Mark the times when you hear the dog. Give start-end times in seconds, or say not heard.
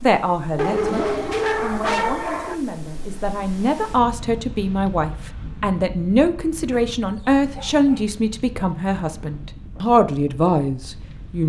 0.6-2.5, 6.7-8.1.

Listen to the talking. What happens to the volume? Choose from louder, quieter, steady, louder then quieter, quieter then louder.
louder.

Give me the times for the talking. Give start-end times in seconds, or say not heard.
0.0-11.4.